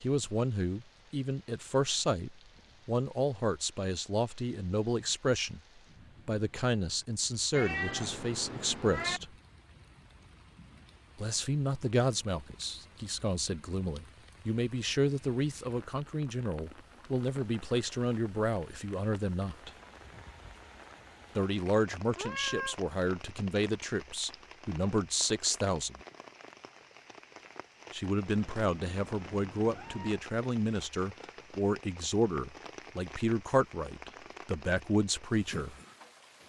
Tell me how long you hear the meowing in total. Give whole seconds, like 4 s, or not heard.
4 s.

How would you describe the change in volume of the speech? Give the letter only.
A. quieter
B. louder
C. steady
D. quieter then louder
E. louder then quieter
C.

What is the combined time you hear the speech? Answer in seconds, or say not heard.
30 s.